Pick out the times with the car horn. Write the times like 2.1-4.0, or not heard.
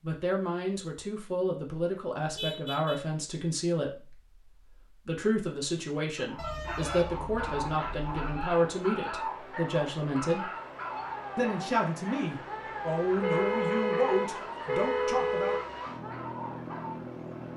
2.4-3.0, 6.3-8.3, 13.2-15.6.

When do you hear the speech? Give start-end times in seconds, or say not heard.
0.0-10.5, 11.3-15.6.